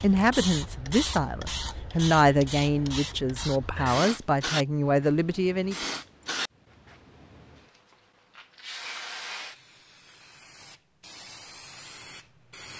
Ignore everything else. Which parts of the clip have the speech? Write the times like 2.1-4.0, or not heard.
0.0-5.8.